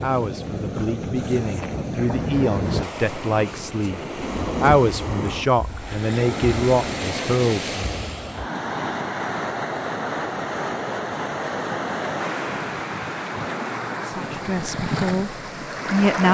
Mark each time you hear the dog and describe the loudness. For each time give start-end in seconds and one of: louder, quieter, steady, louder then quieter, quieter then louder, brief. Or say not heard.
not heard.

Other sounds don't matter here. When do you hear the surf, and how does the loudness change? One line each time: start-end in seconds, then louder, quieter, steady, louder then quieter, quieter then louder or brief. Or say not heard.
0.0-16.2 steady.